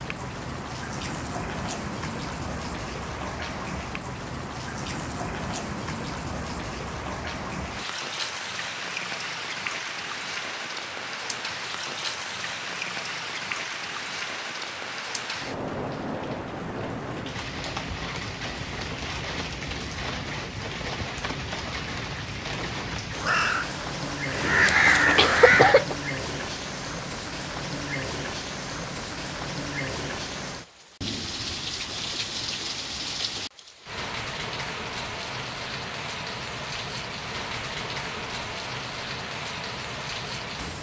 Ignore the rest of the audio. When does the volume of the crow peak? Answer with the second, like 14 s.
25 s.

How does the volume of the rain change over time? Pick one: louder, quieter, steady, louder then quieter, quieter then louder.
steady.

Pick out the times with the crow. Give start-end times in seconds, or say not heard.
23.1-25.9.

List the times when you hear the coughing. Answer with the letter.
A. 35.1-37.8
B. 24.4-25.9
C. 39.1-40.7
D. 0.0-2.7
B.